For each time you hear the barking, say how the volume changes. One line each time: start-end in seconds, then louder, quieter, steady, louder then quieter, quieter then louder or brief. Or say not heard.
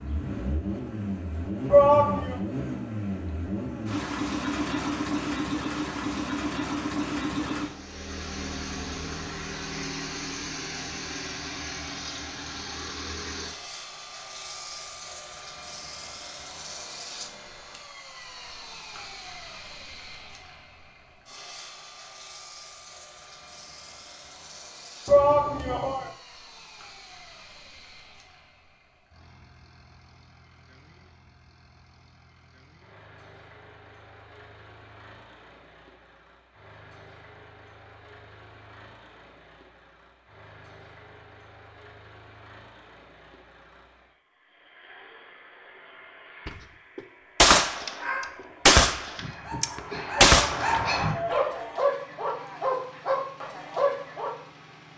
48.0-54.3 louder.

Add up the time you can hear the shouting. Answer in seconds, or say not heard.
3 s.